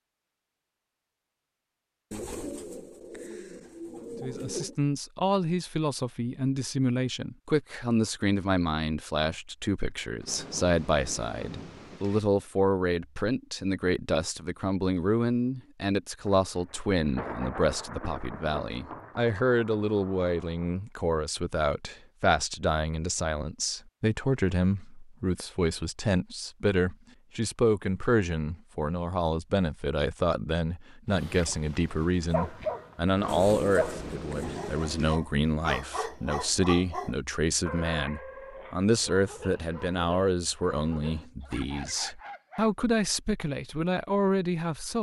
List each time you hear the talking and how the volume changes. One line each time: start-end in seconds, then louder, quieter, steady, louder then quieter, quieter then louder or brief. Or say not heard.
4.2-44.9 steady.